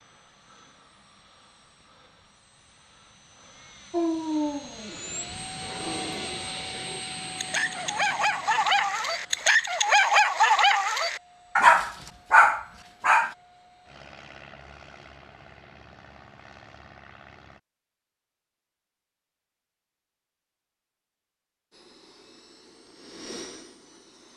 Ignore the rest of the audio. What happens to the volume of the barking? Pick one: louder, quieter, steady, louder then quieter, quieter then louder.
louder.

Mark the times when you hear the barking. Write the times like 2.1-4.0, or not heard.
3.9-13.3.